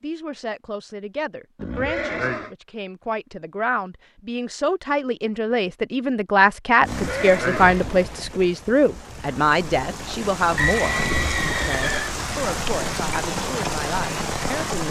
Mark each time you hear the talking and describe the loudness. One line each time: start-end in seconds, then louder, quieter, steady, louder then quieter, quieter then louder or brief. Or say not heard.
0.0-14.8 louder then quieter.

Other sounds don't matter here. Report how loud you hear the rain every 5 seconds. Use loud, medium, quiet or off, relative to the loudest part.
off, medium, loud.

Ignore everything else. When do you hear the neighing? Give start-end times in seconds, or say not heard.
1.6-2.5, 6.8-7.8, 10.6-12.2.